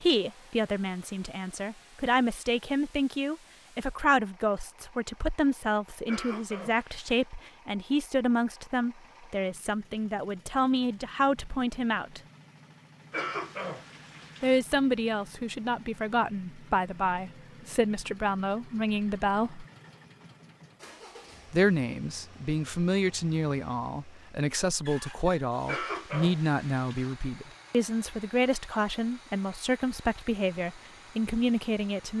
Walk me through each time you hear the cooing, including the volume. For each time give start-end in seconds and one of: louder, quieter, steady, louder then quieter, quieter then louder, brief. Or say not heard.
not heard.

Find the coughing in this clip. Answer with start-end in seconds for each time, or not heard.
6.0-7.2, 13.1-14.6, 25.6-27.1.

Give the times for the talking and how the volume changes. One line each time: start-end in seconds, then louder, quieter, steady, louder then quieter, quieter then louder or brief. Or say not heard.
0.0-12.2 steady
14.4-19.6 steady
21.5-32.1 steady.